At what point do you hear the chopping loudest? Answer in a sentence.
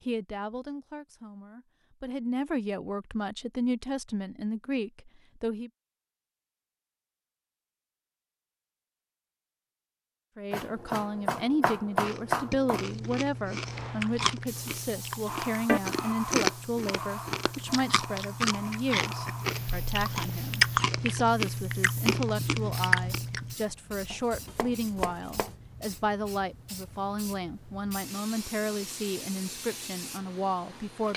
The volume of the chopping peaks at 12 seconds.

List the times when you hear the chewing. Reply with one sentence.
The chewing can be heard from 11.9 to 23.6 s.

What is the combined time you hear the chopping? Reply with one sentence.
You can hear the chopping for 4 seconds altogether.